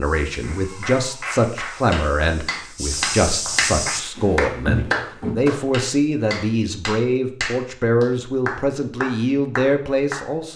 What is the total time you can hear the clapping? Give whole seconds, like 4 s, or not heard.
10 s.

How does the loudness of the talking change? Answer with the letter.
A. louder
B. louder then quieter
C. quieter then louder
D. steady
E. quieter
D.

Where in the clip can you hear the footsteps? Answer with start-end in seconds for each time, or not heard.
0.0-5.4.